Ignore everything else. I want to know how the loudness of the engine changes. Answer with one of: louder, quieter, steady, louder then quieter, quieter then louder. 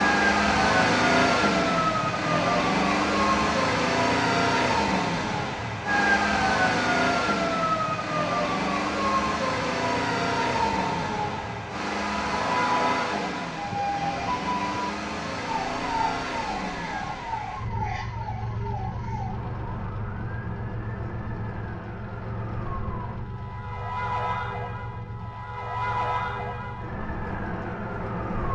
quieter.